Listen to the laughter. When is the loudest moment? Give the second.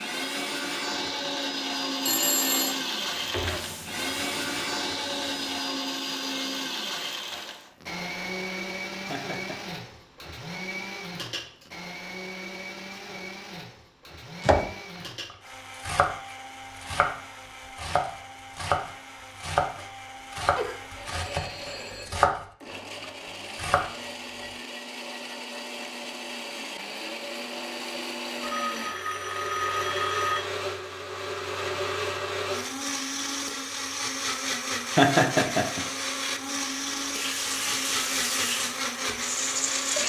35 s.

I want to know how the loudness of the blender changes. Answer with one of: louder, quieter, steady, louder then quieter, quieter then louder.
quieter then louder.